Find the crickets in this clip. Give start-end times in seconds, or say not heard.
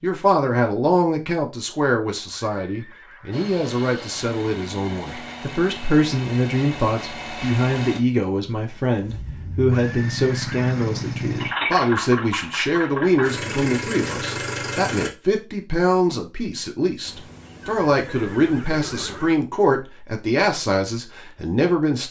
not heard.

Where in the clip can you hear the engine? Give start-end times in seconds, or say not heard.
3.3-15.1.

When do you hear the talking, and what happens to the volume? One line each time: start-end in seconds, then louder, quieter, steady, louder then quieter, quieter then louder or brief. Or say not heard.
0.0-22.0 steady.